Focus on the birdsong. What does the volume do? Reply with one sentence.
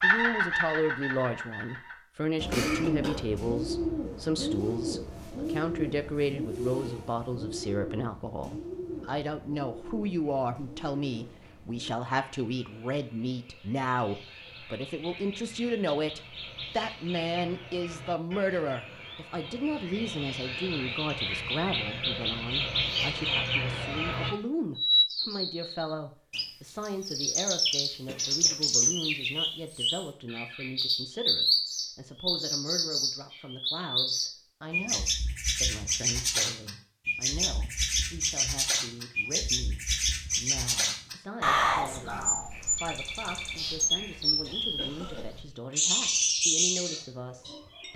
The loudness of the birdsong goes down, then up.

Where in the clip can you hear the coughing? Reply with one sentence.
You can hear the coughing from 2.5 to 3.3 s, from 28.1 to 28.9 s and from 44.5 to 45.3 s.